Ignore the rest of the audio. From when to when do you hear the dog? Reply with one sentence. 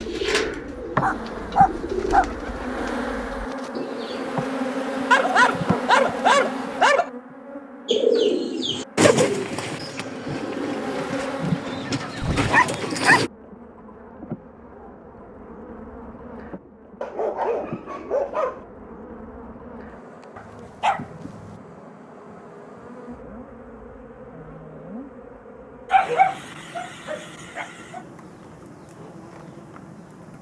You can hear the dog from 0.9 to 2.2 s, from 5.1 to 7.1 s, from 11.4 to 13.2 s, from 17.0 to 18.6 s, from 20.4 to 21.6 s and from 25.9 to 28.0 s.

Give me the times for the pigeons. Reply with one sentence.
You can hear the pigeons from 0.0 to 4.3 s and from 7.8 to 13.3 s.